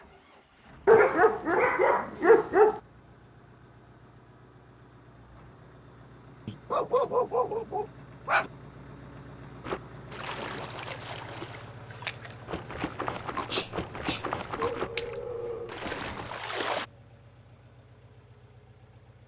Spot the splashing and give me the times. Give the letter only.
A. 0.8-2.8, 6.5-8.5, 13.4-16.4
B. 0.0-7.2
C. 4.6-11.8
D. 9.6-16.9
D.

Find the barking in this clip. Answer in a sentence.
You can hear the barking from 0.8 to 2.8 s, from 6.5 to 8.5 s and from 13.4 to 16.4 s.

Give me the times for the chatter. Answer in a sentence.
The chatter can't be heard in this clip.